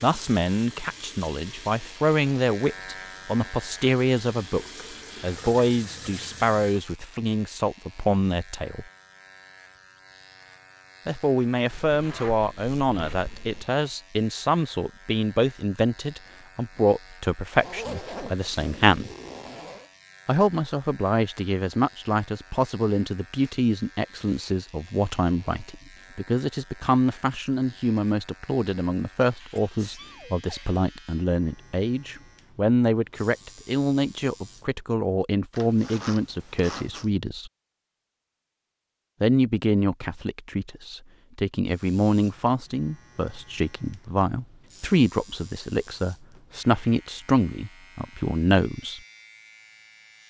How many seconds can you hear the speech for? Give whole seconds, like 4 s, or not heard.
44 s.